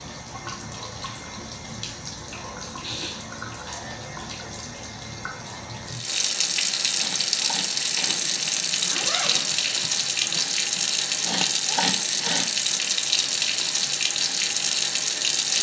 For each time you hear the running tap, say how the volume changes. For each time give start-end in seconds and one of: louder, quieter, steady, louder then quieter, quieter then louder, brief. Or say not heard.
0.0-15.5 louder.